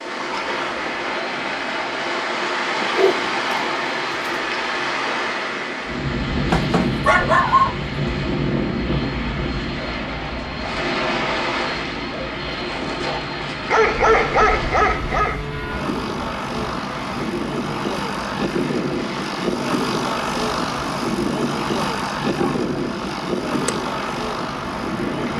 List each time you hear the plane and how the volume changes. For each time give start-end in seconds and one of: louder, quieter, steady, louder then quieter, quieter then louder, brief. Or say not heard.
0.0-25.3 louder.